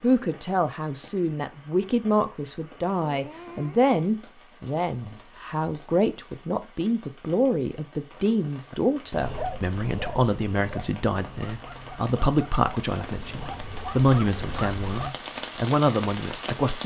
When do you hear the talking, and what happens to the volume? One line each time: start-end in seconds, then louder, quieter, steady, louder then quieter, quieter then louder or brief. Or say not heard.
0.0-16.8 steady.